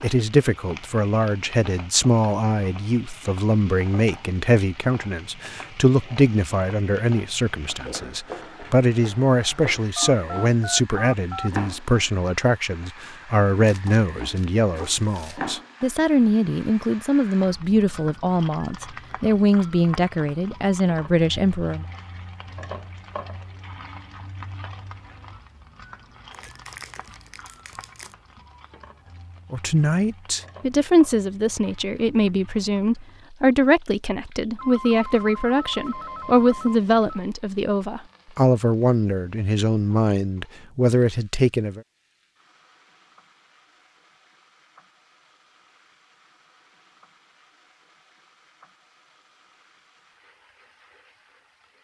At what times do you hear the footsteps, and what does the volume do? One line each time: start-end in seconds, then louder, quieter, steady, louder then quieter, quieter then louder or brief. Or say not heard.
not heard.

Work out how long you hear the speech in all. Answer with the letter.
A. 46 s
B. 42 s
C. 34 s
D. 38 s
C.